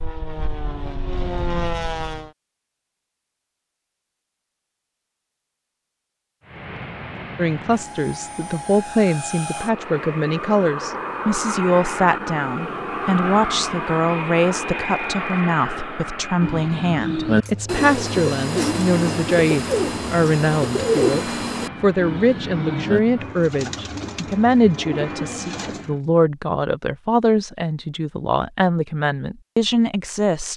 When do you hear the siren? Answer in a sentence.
The siren can't be heard in this clip.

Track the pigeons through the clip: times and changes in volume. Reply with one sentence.
You can hear the pigeons from 16.4 to 25.9 s, getting quieter.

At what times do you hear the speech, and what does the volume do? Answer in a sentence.
The speech can be heard from 7.3 to 30.5 s, at a steady volume.